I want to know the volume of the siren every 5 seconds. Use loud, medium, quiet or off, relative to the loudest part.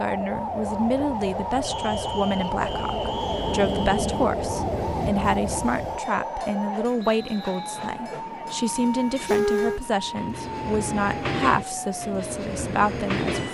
loud, loud, medium.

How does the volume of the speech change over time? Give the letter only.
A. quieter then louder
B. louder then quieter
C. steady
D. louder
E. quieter
C.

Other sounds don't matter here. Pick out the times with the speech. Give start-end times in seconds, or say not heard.
0.0-13.4.